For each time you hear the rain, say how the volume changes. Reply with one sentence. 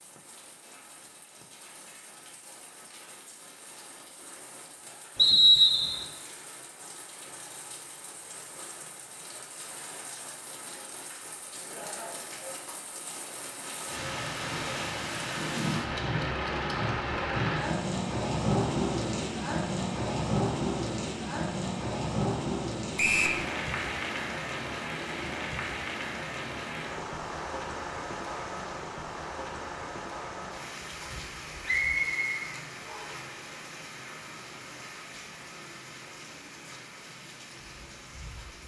You can hear the rain from 0.0 to 38.6 s, getting louder then quieter.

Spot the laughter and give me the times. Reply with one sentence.
You can hear the laughter from 11.5 to 12.8 s.